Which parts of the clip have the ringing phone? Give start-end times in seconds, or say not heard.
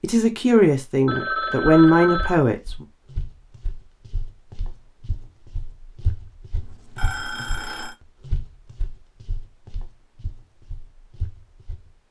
1.1-2.4, 6.5-8.0.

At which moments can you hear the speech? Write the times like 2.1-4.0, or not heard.
0.0-2.9.